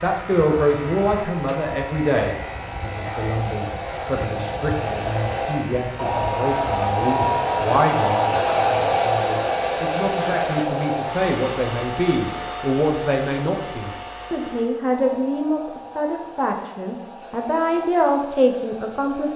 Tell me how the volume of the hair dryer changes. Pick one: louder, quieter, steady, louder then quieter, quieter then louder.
louder then quieter.